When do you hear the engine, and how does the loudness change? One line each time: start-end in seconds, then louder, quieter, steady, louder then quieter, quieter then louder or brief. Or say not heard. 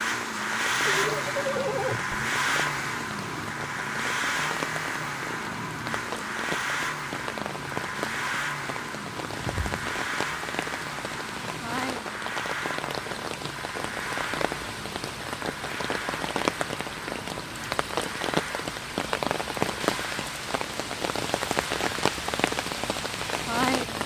0.0-24.0 quieter.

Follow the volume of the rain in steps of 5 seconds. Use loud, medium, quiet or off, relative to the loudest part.
medium, medium, medium, loud, loud.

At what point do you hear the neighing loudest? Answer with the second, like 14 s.
2 s.